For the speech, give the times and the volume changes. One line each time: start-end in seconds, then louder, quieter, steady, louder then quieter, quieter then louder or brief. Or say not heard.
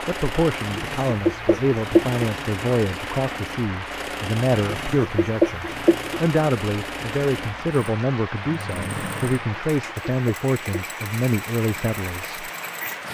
0.0-12.4 steady.